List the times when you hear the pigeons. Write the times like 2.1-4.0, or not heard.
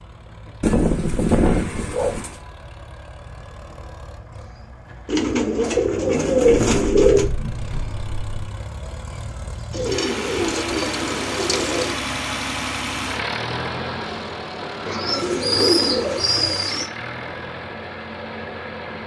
0.6-2.4, 5.0-7.3, 9.7-12.0, 14.8-16.9.